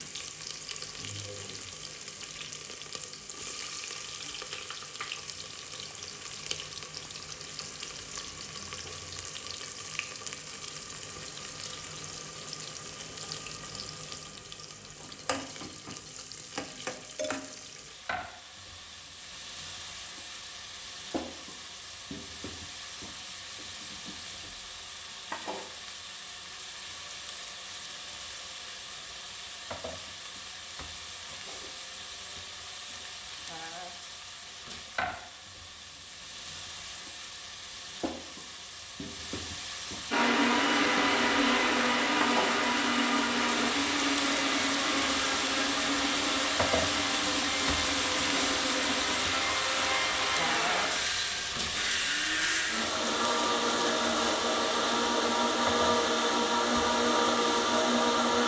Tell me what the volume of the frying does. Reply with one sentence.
The volume of the frying goes up.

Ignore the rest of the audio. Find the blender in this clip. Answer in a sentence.
You can hear the blender from 40.1 to 58.4 s.